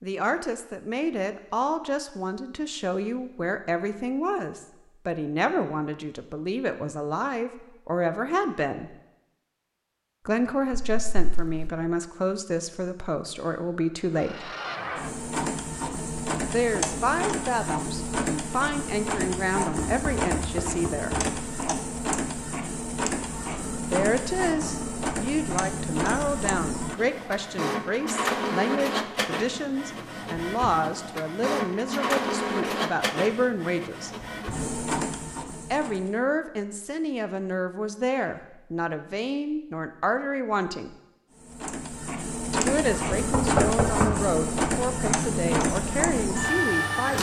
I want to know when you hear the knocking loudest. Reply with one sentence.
The loudest moment of the knocking is at 44 seconds.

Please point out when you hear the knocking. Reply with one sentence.
You can hear the knocking from 10.7 to 11.7 s, from 19.8 to 21.2 s and from 43.1 to 44.1 s.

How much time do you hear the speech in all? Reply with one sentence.
The speech can be heard for 38 seconds in total.